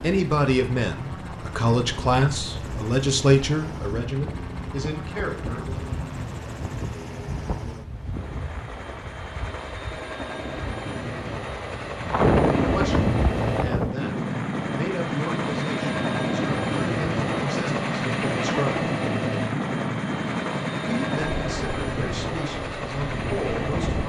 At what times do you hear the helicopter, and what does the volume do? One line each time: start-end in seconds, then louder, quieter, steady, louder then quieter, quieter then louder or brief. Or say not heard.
0.0-24.0 louder.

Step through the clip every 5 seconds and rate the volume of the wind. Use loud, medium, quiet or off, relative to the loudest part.
quiet, quiet, loud, loud, medium.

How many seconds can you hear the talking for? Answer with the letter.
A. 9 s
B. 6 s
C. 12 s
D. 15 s
D.